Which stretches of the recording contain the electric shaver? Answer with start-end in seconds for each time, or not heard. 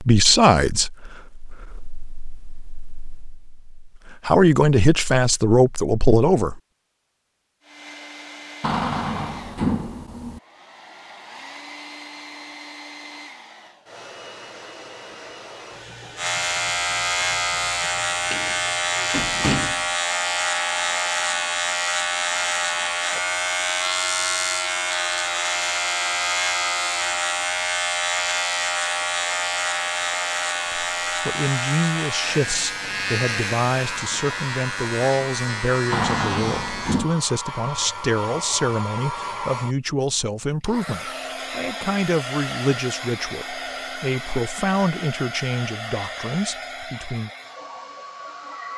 16.1-37.0.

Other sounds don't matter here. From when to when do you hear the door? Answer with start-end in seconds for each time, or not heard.
8.6-10.4, 18.3-19.9, 35.9-37.1.